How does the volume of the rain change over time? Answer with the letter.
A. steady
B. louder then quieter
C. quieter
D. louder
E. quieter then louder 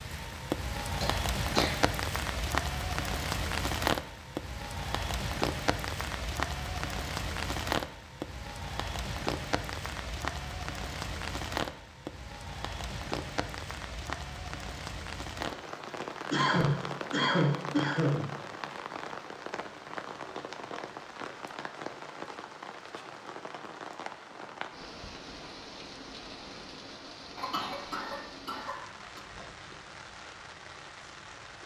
C.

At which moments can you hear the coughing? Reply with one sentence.
You can hear the coughing from 1.0 to 1.8 s, from 16.3 to 18.3 s and from 27.4 to 29.2 s.